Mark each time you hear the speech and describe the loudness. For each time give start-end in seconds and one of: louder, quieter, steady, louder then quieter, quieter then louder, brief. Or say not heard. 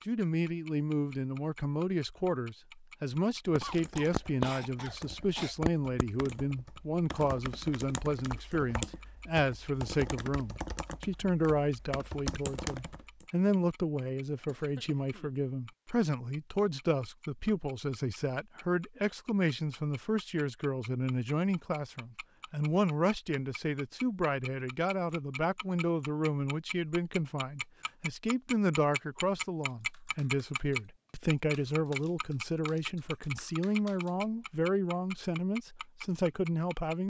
0.1-37.0 steady.